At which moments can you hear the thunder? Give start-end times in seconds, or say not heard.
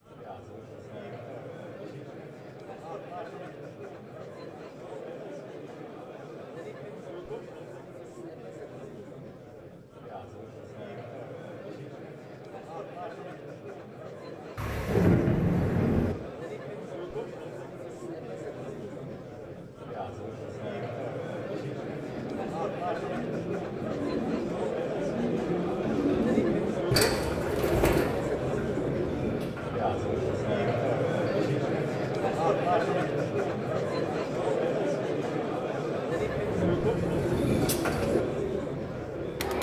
14.6-16.1, 36.4-37.5.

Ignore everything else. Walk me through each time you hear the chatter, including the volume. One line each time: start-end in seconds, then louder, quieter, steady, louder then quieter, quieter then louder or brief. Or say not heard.
0.0-39.5 louder.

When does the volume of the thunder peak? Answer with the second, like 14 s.
15 s.